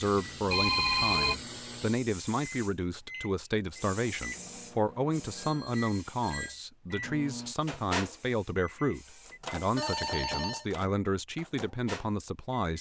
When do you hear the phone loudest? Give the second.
1 s.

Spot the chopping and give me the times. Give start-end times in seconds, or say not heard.
not heard.